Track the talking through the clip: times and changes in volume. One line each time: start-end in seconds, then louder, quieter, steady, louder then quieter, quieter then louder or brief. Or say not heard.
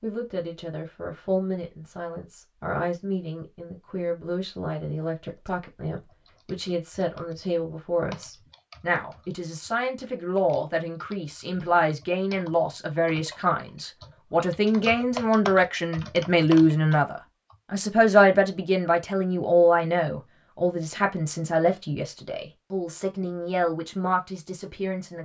0.0-25.2 louder then quieter.